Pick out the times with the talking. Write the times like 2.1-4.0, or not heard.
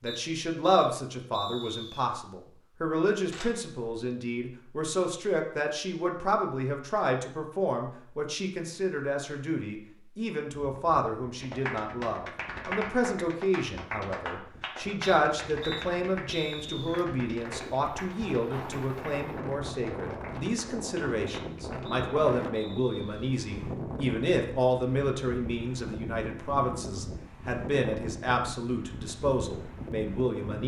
0.0-30.6.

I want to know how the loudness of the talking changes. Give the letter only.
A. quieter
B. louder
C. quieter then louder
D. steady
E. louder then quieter
D.